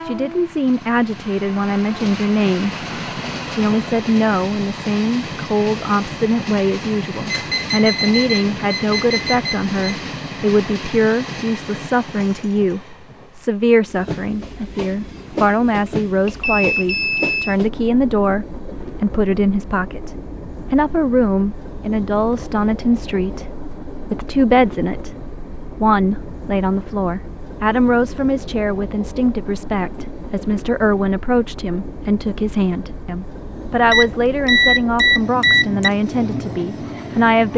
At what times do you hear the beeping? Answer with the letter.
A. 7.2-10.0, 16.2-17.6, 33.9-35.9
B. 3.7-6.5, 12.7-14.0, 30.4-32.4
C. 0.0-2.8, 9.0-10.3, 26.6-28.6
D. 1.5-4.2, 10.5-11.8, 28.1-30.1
A.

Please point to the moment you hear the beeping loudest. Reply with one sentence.
The volume of the beeping peaks at 35 seconds.